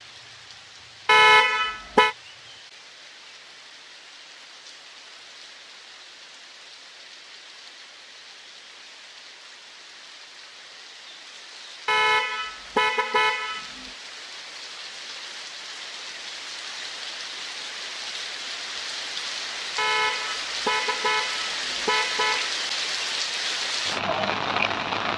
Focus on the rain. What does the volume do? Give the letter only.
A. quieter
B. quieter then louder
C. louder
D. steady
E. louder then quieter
C.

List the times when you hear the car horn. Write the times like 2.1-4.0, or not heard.
1.1-2.1, 11.8-13.8, 19.8-22.5.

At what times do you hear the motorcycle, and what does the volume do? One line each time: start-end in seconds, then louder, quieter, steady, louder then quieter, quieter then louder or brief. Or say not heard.
not heard.